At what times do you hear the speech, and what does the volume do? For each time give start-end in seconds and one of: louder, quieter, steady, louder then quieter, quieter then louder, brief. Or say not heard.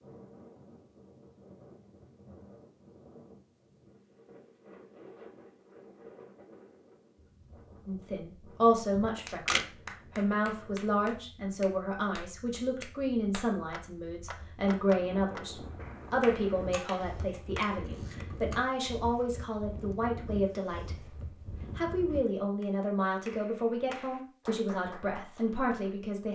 7.8-21.1 steady
21.8-26.3 steady.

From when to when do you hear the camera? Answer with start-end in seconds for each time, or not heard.
8.9-9.7, 16.7-18.8.